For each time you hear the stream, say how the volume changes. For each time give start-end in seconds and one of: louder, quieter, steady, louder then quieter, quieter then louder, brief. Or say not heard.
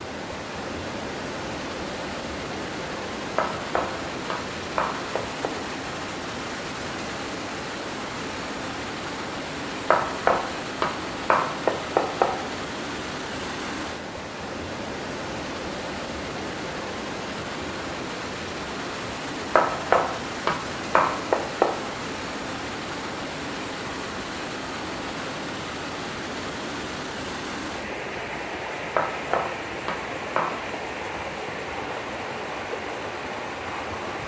0.0-34.2 steady.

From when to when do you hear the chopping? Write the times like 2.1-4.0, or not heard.
3.4-5.5, 9.9-12.4, 19.6-21.9, 28.9-30.8.